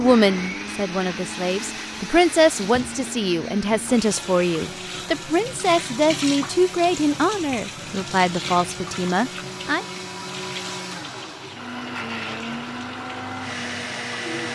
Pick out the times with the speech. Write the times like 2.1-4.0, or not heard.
0.0-9.8.